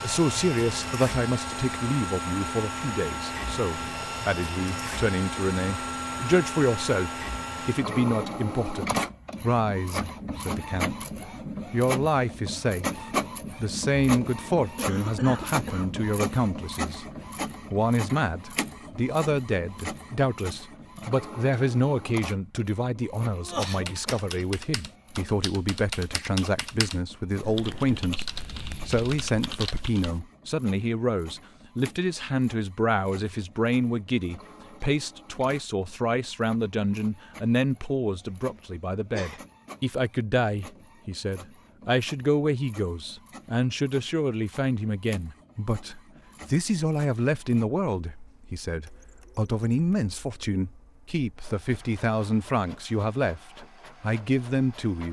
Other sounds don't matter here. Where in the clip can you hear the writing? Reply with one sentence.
You can't hear the writing here.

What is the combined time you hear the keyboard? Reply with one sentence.
The keyboard can be heard for 7 seconds in total.